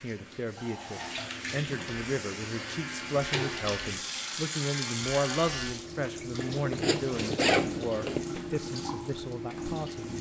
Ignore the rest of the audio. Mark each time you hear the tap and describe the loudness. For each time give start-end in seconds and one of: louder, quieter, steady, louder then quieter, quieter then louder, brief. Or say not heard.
0.0-10.1 steady.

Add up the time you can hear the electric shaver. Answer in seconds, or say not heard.
4 s.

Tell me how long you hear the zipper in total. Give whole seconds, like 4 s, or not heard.
2 s.